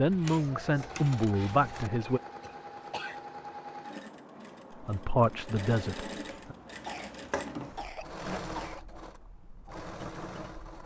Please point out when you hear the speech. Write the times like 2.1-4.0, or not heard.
0.0-2.2, 4.8-6.5.